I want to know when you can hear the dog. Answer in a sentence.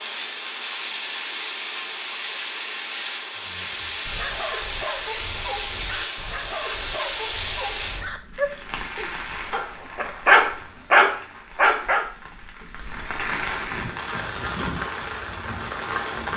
You can hear the dog from 3.4 to 12.1 s.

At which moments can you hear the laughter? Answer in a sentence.
The laughter can't be heard in this clip.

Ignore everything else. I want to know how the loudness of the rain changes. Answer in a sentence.
The volume of the rain goes down, then up.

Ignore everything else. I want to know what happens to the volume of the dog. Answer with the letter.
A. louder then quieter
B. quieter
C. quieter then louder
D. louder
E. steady
D.